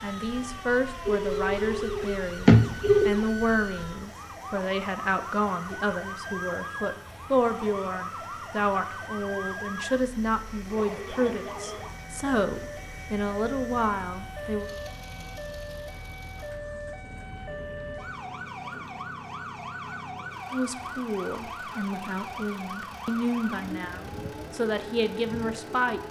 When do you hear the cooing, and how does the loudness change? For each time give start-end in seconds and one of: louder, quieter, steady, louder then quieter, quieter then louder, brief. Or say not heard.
not heard.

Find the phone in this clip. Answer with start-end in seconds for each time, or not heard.
1.1-3.0.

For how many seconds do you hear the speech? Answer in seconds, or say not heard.
20 s.